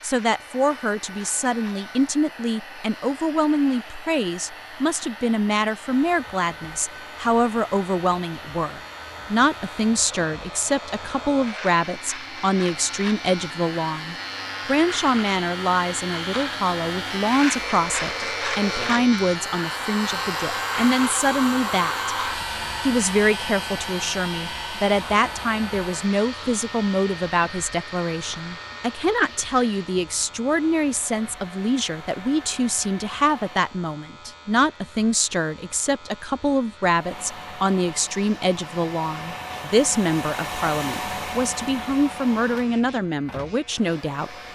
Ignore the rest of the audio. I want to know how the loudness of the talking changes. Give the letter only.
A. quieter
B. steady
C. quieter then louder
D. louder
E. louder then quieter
B.